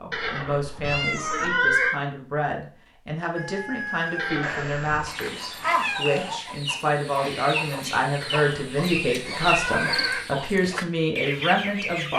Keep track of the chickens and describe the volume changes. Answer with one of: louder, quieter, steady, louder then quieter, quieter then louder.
steady.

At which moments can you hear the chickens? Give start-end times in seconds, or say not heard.
3.4-12.1.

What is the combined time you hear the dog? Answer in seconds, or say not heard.
not heard.